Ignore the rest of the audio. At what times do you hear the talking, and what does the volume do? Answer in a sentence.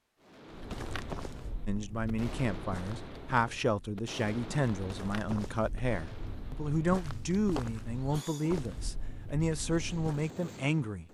The talking can be heard from 1.6 to 11.1 s, at a steady volume.